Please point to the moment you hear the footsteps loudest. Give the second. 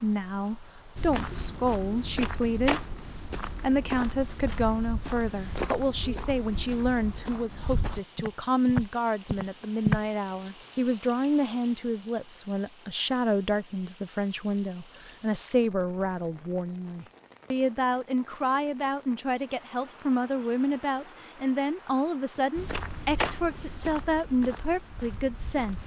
10 s.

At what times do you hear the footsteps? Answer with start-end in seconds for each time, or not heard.
0.9-10.1, 22.6-25.8.